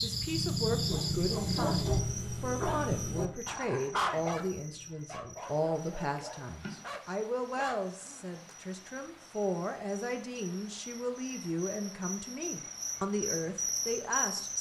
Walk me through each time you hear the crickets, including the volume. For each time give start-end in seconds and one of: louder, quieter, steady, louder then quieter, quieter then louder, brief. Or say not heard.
0.0-14.5 quieter then louder.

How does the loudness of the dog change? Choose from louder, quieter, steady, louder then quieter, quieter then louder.
quieter.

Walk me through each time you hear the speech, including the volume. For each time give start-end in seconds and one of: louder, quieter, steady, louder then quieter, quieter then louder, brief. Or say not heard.
0.0-14.5 steady.